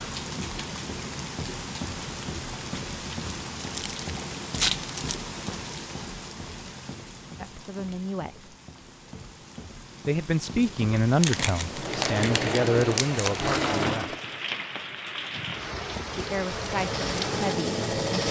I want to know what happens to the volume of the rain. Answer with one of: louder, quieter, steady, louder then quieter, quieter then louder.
quieter then louder.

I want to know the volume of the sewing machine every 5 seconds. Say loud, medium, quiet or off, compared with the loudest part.
off, off, loud, loud.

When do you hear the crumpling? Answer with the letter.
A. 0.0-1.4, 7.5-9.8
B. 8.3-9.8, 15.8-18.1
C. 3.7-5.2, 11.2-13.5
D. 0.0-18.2
C.